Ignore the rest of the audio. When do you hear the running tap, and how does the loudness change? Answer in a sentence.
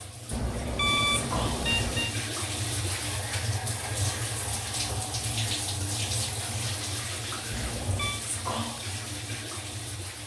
You can hear the running tap from 0.0 to 10.2 s, at a steady volume.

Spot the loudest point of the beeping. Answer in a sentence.
The volume of the beeping peaks at 1 second.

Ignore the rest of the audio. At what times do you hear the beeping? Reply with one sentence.
You can hear the beeping from 0.3 to 2.1 s and from 7.5 to 8.2 s.